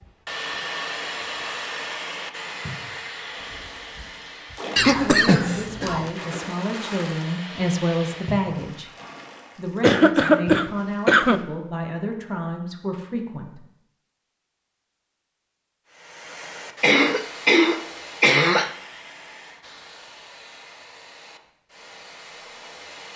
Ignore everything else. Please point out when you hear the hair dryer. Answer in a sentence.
You can hear the hair dryer from 0.0 to 8.5 s and from 15.8 to 23.1 s.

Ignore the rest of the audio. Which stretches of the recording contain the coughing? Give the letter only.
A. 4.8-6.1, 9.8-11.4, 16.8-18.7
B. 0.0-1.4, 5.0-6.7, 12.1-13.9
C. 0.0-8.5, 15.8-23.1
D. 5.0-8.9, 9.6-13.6
A.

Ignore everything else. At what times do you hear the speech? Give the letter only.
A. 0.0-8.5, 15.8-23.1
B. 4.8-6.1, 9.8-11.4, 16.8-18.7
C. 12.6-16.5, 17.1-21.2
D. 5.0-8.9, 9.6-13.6
D.